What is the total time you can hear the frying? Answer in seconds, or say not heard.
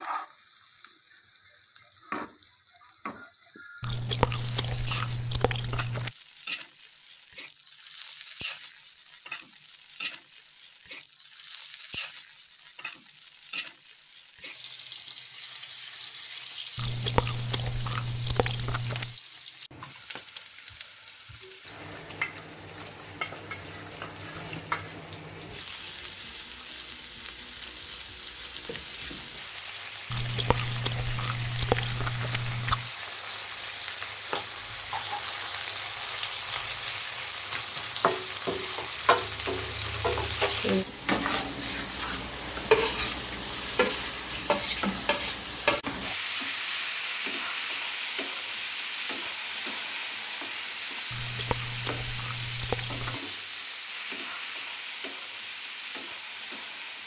57 s.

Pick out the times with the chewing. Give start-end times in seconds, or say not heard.
3.8-6.1, 16.8-19.1, 30.1-32.9, 51.1-53.2.